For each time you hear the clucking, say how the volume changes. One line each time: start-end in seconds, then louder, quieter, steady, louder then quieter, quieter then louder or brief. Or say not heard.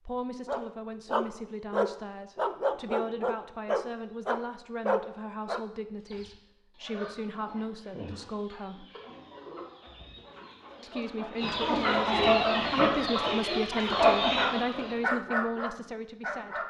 6.0-14.9 louder.